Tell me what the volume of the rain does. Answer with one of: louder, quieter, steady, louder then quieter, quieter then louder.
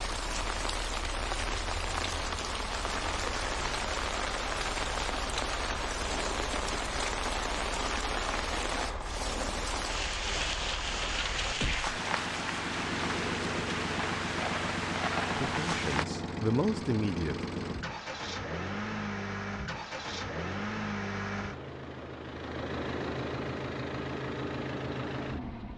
steady.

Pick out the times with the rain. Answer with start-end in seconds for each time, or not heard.
0.0-16.1.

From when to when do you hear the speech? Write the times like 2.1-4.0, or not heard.
15.2-17.4.